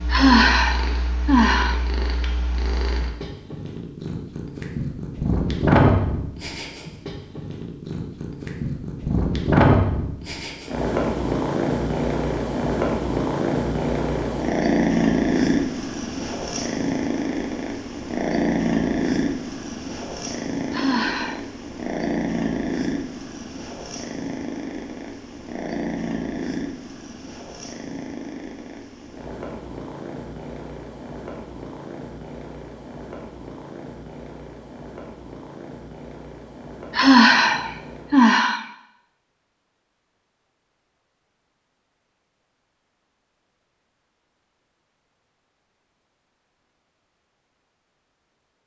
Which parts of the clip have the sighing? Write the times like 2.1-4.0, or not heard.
0.1-1.8, 20.7-21.4, 37.0-38.6.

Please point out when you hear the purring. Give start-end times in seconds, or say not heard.
0.0-38.2.